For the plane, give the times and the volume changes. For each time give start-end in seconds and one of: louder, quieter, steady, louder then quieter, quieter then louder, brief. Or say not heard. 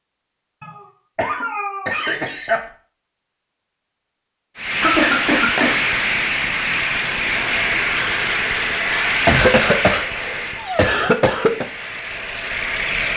4.5-13.1 quieter.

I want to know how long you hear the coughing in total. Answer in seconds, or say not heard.
5 s.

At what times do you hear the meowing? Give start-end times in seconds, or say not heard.
0.6-2.0, 10.6-11.0.